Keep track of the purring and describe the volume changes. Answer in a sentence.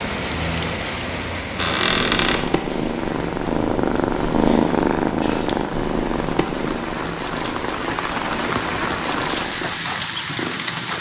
The loudness of the purring goes up, then down.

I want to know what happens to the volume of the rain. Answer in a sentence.
The loudness of the rain goes down, then up.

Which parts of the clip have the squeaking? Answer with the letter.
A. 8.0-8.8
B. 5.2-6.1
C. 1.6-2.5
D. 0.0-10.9
C.